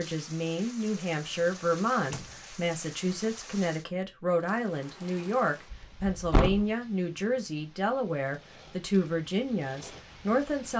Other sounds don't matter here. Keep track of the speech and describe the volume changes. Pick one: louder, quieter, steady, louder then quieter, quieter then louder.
steady.